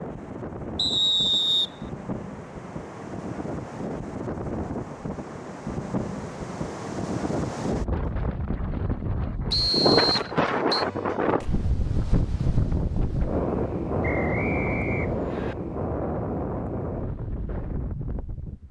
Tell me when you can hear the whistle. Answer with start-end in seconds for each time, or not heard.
0.8-1.7, 9.5-10.8, 14.0-15.6.